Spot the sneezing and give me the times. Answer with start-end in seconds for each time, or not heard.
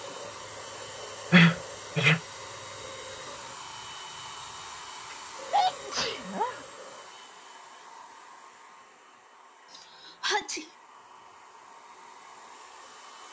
1.3-2.2, 5.1-6.6, 9.7-10.7.